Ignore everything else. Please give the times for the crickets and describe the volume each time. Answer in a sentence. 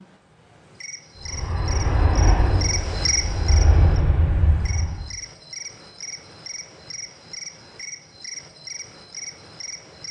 You can hear the crickets from 0.0 to 10.0 s, getting louder then quieter.